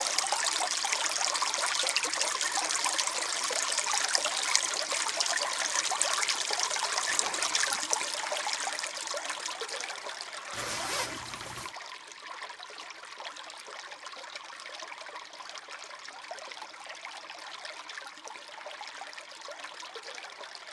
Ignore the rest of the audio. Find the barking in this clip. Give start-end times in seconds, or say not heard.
not heard.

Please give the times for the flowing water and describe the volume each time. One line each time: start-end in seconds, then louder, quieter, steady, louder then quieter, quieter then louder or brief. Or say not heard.
0.0-20.6 quieter.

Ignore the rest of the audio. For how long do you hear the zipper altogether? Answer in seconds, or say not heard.
2 s.